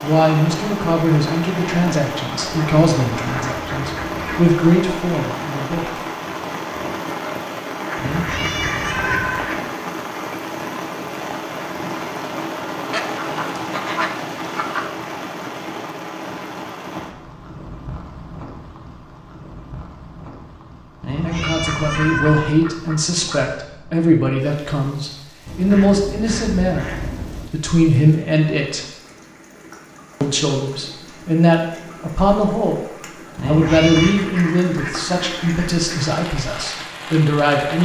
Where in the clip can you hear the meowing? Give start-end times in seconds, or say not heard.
8.0-9.4, 21.0-22.5, 33.4-34.2.